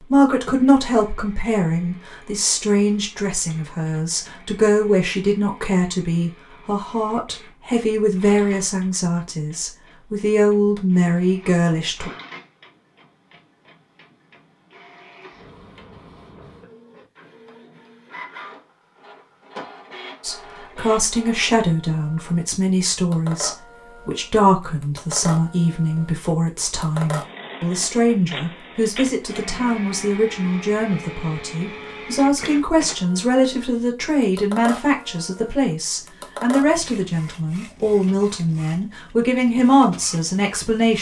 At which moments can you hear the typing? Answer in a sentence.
You can't hear the typing here.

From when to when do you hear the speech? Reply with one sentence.
You can hear the speech from 0.0 to 12.1 s and from 20.2 to 40.9 s.